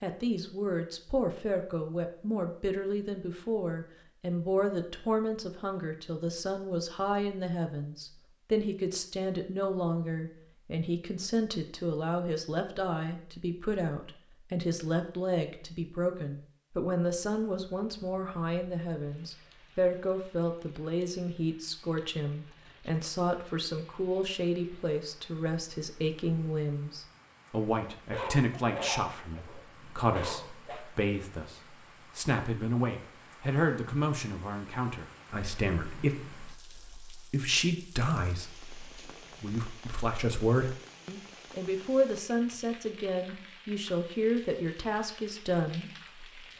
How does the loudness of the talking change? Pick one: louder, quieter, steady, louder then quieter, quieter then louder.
steady.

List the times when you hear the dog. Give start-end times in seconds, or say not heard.
28.1-30.9.